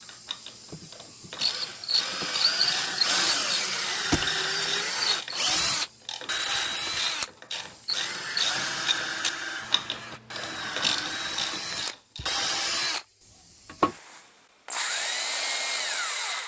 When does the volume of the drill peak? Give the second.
3 s.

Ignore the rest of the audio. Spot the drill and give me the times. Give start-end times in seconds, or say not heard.
0.0-16.4.